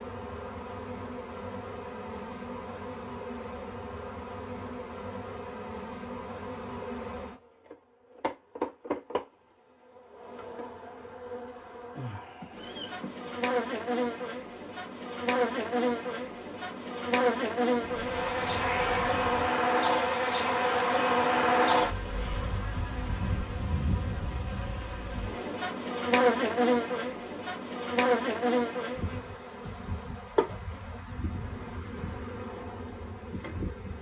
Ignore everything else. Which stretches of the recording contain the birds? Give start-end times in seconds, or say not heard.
not heard.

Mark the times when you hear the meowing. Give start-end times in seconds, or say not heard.
12.4-13.3, 17.8-19.5.